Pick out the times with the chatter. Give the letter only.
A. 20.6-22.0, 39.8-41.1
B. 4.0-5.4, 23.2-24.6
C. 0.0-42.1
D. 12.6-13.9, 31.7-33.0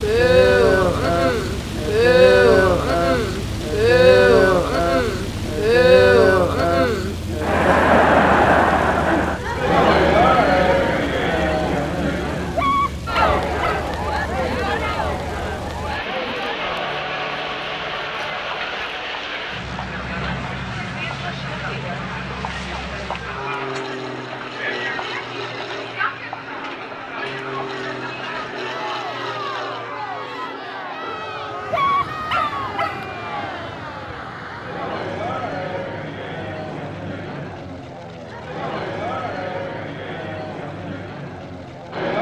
C.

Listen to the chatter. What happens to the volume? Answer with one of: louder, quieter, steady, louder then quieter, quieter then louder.
quieter.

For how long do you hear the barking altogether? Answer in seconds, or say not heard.
3 s.